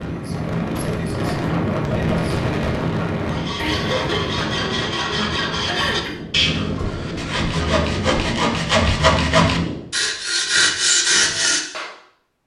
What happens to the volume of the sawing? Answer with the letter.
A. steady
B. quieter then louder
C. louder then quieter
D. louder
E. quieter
D.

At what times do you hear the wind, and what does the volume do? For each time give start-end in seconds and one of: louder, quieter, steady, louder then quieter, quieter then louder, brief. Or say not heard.
0.0-9.9 quieter.